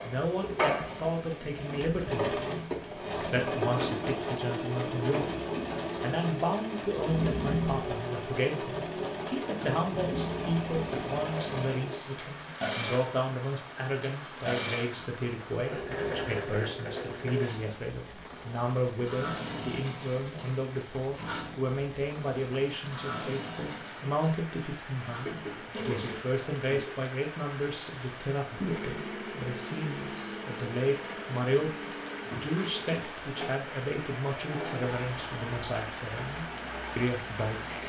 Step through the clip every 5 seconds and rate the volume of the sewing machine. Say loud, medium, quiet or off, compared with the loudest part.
loud, loud, loud, loud, medium, medium, medium, medium.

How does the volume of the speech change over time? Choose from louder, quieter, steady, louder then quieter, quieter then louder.
steady.